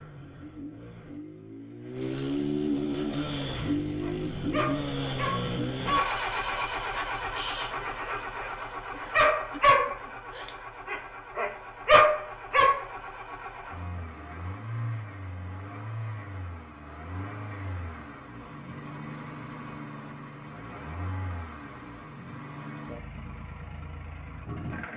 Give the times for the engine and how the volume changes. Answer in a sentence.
The engine can be heard from 0.0 to 24.9 s, getting quieter.